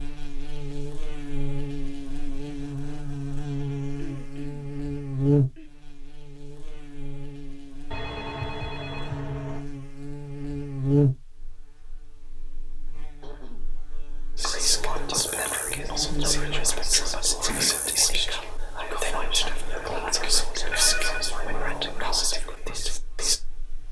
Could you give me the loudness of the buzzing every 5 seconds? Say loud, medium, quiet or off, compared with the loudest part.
loud, loud, loud, medium, quiet.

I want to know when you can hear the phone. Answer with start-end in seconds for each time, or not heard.
7.9-9.7, 20.6-21.4.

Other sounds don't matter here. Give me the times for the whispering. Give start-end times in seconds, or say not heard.
14.3-23.4.